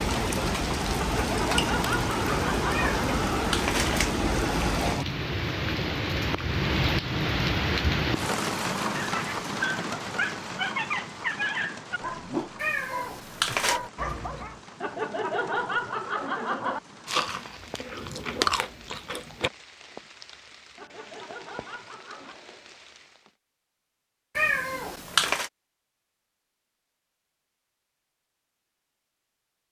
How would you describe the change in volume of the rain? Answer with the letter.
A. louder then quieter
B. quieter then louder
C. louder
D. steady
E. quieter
E.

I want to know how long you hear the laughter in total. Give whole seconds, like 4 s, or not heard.
6 s.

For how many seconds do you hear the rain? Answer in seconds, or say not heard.
23 s.